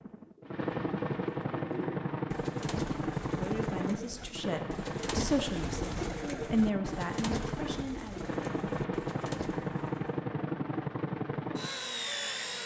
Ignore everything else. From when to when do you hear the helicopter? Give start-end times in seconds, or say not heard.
0.0-12.6.